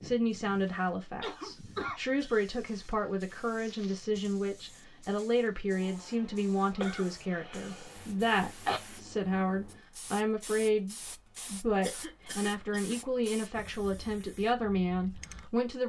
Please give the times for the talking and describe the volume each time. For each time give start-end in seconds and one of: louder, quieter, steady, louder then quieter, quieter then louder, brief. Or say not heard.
0.0-15.8 steady.